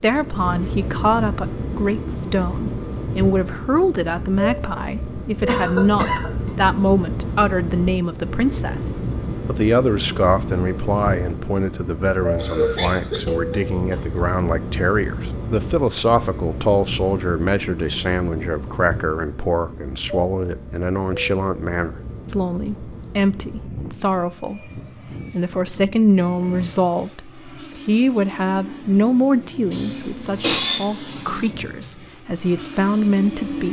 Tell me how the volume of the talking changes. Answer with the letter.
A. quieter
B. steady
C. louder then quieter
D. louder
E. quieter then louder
B.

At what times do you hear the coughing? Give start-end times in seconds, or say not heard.
5.5-6.5, 12.3-14.2, 29.7-30.9.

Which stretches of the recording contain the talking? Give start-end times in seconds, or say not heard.
0.0-33.6.